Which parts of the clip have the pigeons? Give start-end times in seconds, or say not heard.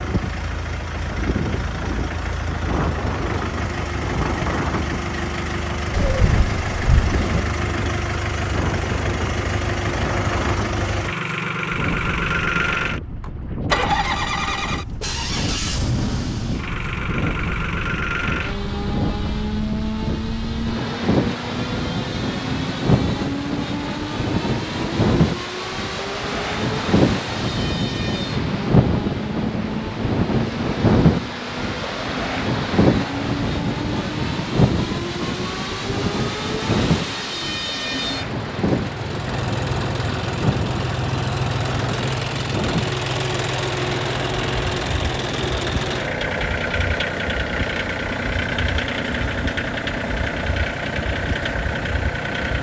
5.9-7.5.